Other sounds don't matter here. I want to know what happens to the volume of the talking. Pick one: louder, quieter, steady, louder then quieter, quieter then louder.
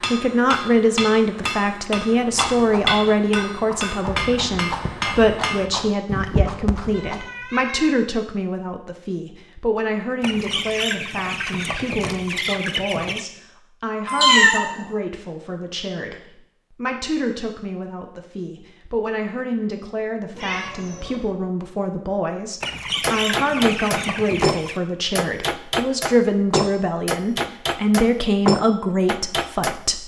quieter then louder.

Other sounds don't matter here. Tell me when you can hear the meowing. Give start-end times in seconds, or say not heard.
6.9-8.1, 14.1-14.7, 20.4-21.2.